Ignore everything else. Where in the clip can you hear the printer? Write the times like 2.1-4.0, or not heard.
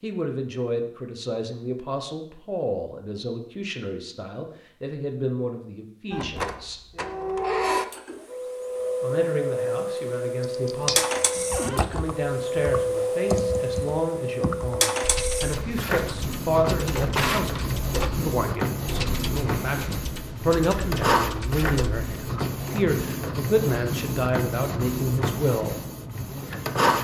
6.1-27.0.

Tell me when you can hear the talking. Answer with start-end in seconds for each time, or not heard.
0.0-6.8, 9.0-25.8.